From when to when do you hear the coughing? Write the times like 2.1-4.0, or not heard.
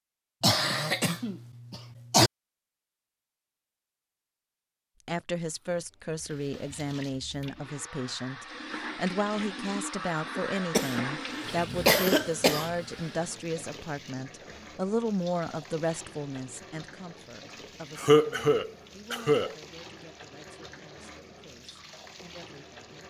0.4-2.3, 10.7-12.7, 17.9-19.6.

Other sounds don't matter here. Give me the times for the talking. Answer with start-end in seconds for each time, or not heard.
5.0-23.0.